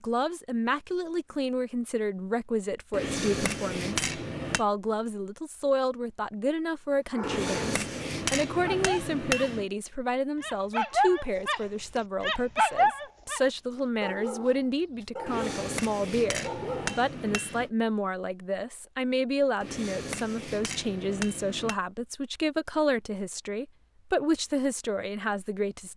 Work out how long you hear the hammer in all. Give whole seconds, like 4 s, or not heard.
9 s.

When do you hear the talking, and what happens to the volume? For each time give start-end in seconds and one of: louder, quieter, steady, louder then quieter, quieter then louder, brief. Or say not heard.
0.0-25.9 steady.